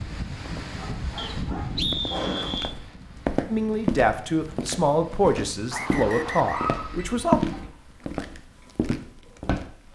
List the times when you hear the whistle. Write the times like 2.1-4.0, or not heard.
1.1-2.8, 5.7-6.7.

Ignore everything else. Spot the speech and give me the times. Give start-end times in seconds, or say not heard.
3.5-7.4.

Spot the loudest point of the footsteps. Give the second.
7 s.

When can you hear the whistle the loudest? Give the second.
2 s.